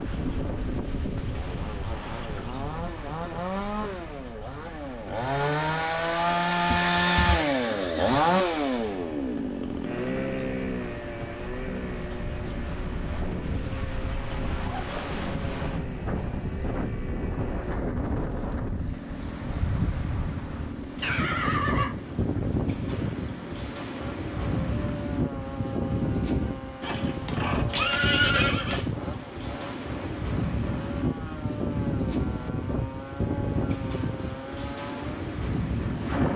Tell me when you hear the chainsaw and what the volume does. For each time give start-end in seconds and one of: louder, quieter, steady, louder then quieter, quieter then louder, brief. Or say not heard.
0.1-36.3 quieter.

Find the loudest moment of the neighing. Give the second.
28 s.